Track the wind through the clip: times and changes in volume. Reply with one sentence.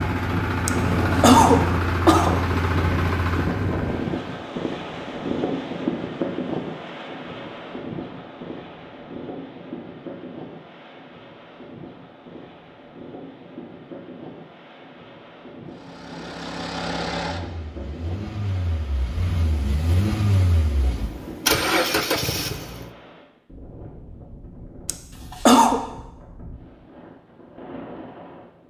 The wind can be heard from 0.0 to 28.6 s, getting quieter.